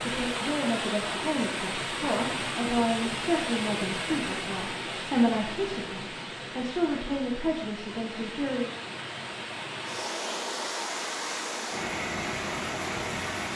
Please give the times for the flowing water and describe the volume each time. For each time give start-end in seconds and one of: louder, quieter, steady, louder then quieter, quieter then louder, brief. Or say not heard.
0.0-13.5 quieter then louder.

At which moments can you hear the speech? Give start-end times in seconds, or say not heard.
0.1-8.7.